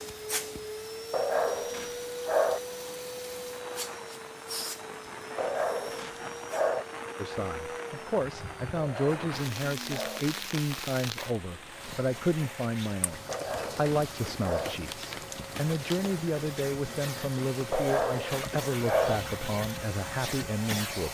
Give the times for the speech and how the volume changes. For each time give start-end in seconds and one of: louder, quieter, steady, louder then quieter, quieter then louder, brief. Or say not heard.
7.2-21.0 steady.